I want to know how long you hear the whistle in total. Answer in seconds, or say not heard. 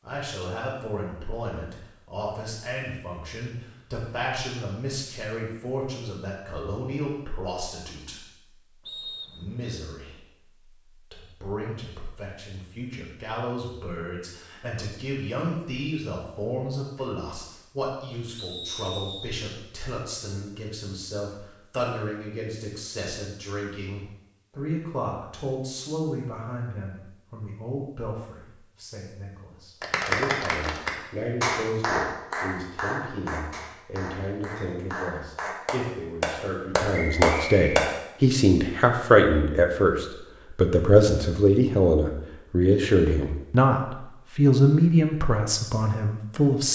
3 s.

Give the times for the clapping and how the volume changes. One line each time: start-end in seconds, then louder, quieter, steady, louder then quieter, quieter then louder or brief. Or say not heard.
29.8-37.9 quieter then louder.